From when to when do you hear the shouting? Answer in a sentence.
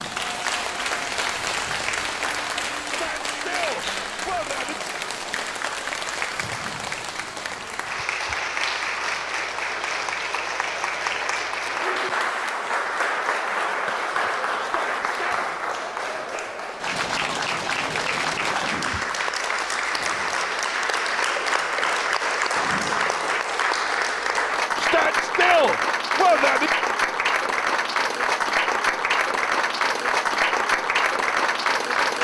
The shouting can be heard from 2.9 to 4.8 s, from 14.6 to 15.4 s and from 24.8 to 26.7 s.